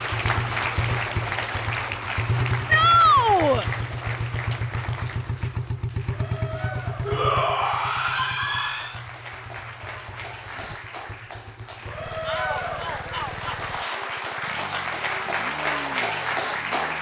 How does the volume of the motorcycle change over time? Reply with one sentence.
The loudness of the motorcycle goes down.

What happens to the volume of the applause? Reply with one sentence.
The volume of the applause goes down, then up.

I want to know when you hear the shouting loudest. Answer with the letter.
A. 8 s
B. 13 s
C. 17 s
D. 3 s
D.